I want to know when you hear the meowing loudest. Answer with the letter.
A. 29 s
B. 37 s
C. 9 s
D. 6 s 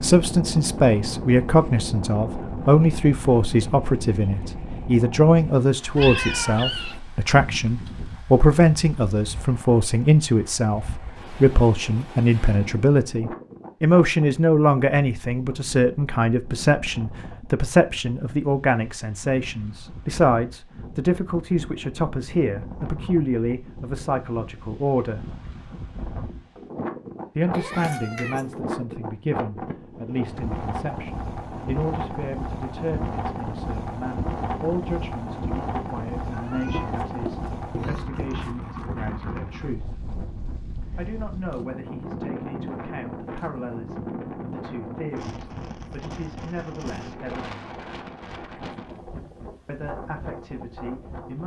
D.